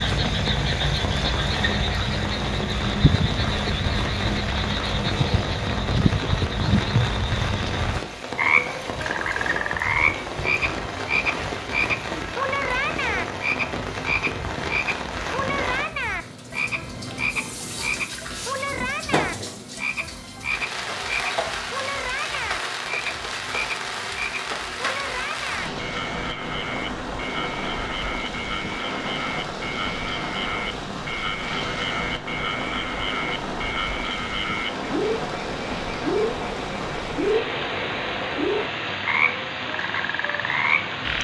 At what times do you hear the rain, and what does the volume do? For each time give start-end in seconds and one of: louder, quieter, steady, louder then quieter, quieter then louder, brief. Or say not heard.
0.0-41.2 steady.